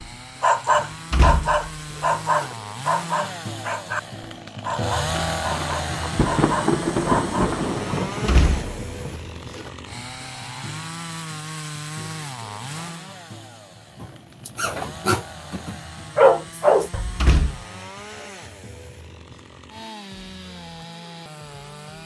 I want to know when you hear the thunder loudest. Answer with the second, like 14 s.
7 s.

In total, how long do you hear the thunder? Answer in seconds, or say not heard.
4 s.